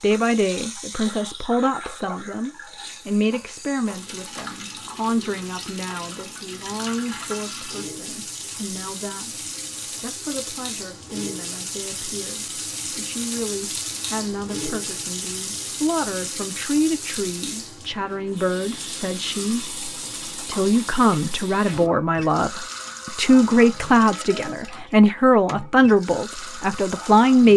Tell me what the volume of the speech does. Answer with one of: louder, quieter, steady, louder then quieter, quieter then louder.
quieter then louder.